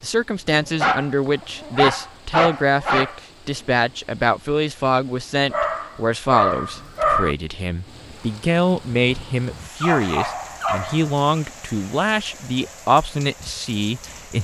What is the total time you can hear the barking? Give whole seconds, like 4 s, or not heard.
6 s.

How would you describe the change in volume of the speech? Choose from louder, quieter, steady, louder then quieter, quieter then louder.
steady.